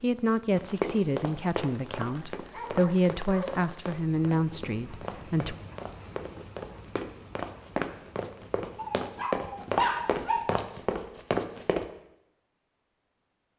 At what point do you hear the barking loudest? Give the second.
10 s.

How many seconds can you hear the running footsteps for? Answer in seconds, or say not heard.
11 s.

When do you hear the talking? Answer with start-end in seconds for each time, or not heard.
0.0-5.5.